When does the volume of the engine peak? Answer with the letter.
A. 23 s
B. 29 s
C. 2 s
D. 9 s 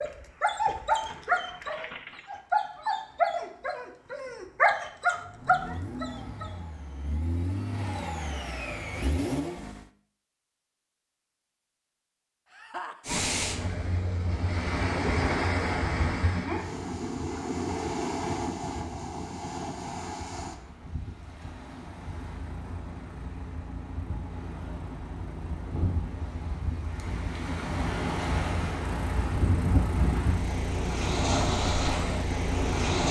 D.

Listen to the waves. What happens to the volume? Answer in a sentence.
The loudness of the waves goes down, then up.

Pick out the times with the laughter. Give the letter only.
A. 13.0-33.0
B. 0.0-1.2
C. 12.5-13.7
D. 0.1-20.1
C.